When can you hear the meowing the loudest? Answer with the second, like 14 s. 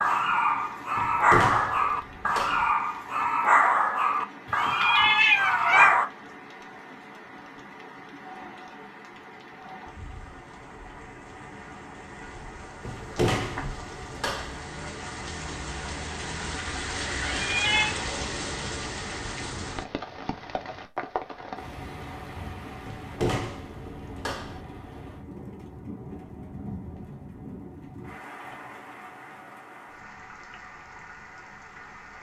5 s.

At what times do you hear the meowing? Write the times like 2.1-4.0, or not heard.
4.5-6.0, 17.2-17.9.